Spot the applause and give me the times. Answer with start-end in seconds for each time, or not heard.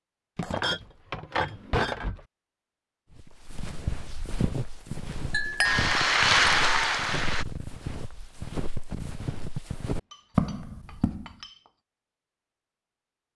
5.6-7.5.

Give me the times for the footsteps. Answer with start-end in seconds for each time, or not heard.
3.1-11.3.